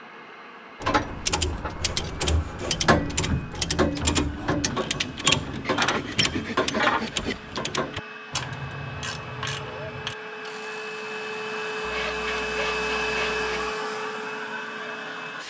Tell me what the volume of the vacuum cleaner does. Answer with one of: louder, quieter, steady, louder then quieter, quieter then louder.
louder.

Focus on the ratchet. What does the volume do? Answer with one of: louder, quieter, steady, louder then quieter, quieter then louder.
quieter.